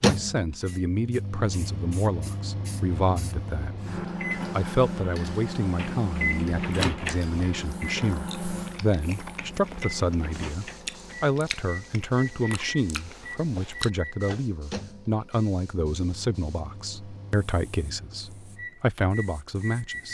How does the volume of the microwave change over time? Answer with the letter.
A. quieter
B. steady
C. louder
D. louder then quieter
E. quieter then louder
D.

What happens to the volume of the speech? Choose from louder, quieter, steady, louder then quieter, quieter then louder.
steady.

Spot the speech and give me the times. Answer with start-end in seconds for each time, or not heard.
0.0-3.8, 4.5-20.0.